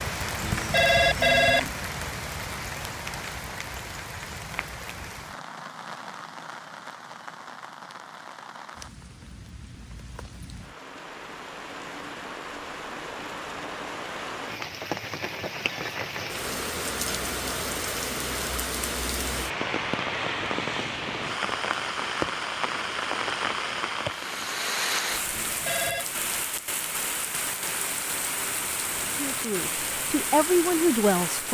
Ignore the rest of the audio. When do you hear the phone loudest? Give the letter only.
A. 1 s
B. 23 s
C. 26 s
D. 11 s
A.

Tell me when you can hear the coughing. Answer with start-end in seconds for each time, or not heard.
not heard.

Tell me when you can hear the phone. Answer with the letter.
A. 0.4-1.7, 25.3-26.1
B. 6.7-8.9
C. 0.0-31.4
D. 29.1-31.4
A.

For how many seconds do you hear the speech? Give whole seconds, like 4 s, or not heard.
2 s.